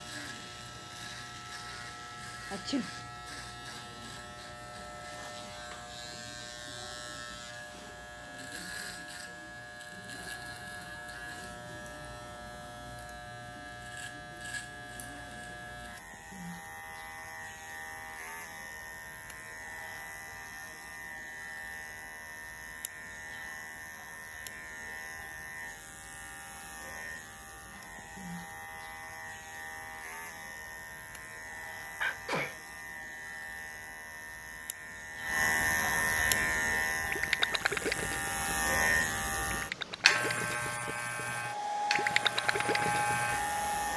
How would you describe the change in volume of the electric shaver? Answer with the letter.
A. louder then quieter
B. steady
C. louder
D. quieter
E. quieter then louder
C.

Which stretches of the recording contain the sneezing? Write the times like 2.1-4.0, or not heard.
2.5-3.0, 32.0-32.5.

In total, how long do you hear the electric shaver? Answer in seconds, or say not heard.
44 s.